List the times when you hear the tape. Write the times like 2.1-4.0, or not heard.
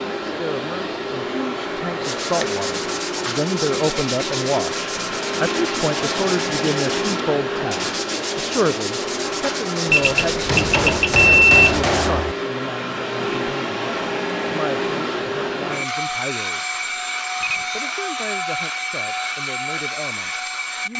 not heard.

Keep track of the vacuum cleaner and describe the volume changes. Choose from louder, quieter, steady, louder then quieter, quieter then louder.
steady.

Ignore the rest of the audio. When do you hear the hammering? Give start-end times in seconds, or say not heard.
10.4-12.3.